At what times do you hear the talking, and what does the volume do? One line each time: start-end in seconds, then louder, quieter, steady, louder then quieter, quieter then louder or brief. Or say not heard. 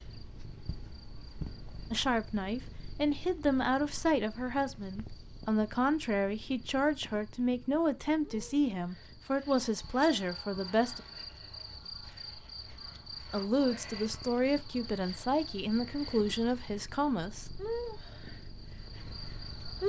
1.9-11.0 steady
13.3-17.4 steady.